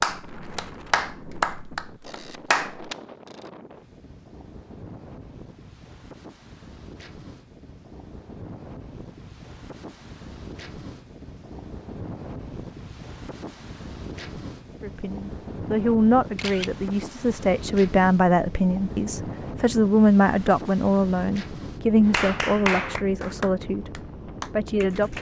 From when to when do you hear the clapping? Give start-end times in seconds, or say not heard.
0.0-2.9, 22.1-25.1.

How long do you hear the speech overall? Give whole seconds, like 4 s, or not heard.
10 s.